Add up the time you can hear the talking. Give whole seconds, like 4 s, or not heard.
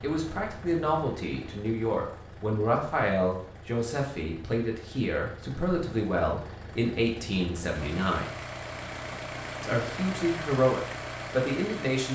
11 s.